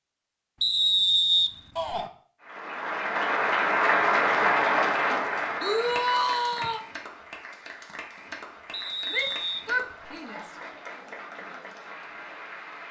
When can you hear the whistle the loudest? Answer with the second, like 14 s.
1 s.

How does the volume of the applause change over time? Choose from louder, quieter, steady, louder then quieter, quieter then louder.
quieter.